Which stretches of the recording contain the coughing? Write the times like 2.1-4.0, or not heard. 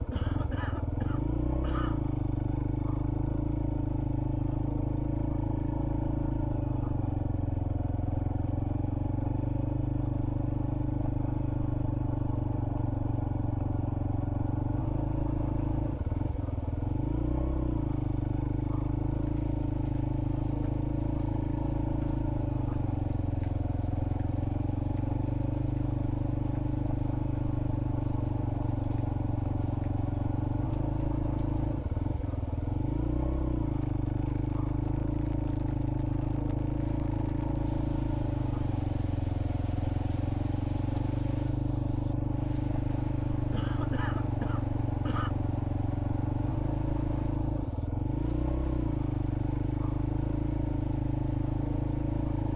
0.1-2.0, 43.5-45.3.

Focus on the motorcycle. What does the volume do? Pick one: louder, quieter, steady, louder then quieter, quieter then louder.
steady.